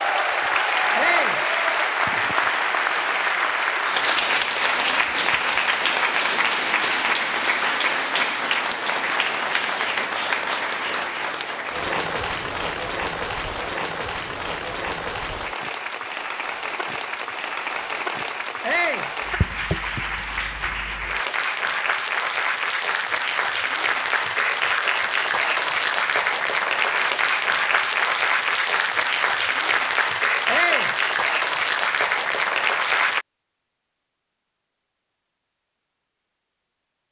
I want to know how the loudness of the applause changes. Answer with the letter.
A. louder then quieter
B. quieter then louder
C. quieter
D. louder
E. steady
B.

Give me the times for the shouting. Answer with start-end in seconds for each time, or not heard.
0.9-1.4, 18.6-19.1, 30.4-30.9.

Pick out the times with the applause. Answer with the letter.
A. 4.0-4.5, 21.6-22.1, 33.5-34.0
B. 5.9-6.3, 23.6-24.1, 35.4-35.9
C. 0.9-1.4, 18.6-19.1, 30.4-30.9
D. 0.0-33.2
D.